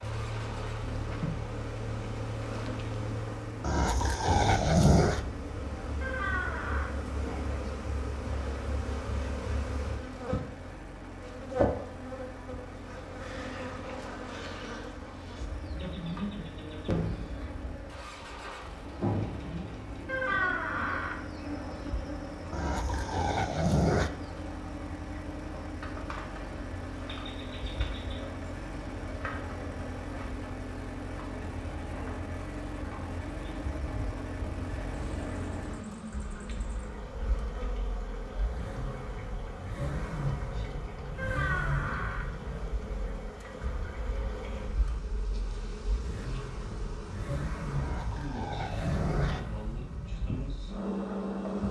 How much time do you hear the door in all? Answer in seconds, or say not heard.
3 s.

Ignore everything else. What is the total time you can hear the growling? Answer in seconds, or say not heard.
5 s.